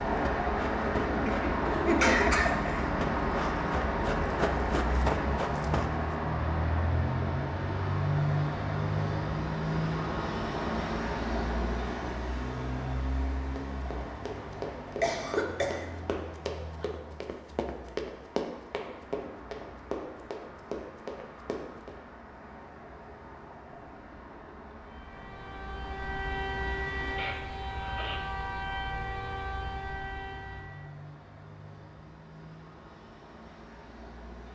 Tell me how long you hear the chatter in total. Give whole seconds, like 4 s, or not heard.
not heard.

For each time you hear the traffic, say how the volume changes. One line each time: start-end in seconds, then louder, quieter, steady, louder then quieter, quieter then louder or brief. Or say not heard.
0.0-34.5 quieter.